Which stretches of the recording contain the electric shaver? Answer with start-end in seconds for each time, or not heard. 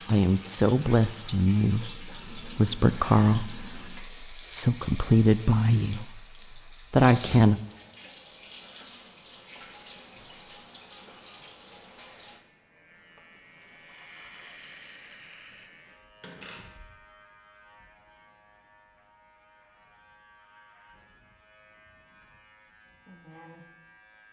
12.2-24.2.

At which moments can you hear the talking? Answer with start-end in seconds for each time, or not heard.
0.1-7.6.